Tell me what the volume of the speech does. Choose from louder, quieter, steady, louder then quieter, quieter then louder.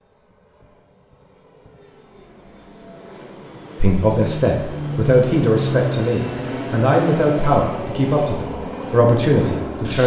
steady.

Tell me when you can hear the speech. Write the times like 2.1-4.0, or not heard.
3.8-10.0.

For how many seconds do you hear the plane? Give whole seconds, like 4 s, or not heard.
10 s.